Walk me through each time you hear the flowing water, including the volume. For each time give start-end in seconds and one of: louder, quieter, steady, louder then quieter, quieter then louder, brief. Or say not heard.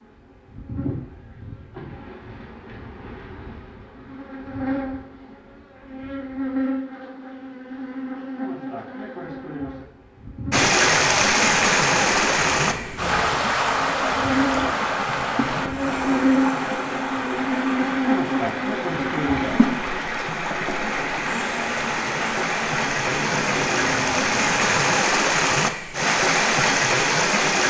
10.5-27.6 quieter then louder.